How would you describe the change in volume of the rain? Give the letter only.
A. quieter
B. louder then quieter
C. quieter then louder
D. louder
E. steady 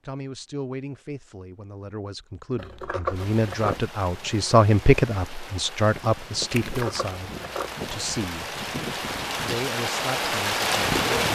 D.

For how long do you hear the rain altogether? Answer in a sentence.
You can hear the rain for 8 seconds altogether.